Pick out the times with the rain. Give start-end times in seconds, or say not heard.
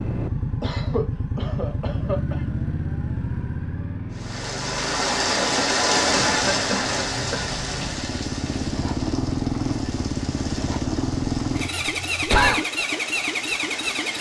4.1-14.1.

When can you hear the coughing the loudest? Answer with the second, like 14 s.
12 s.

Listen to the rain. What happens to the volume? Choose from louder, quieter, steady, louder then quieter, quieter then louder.
quieter.